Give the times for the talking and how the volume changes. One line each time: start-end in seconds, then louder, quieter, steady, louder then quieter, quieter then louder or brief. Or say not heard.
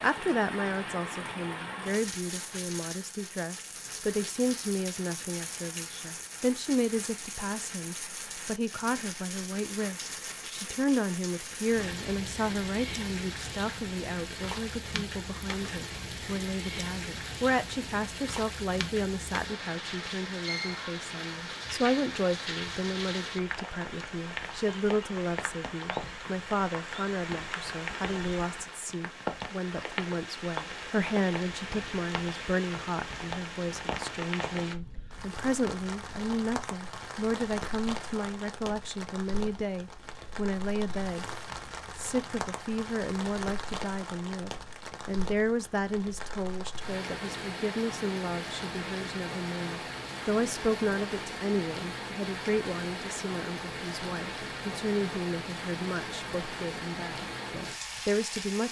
0.0-41.2 steady
42.0-58.6 steady.